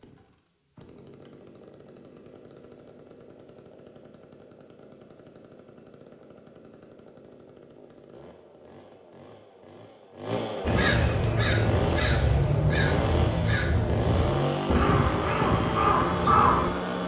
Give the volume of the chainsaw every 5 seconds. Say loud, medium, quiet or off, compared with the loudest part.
quiet, quiet, loud, loud.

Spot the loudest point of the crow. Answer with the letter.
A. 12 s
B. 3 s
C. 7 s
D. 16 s
D.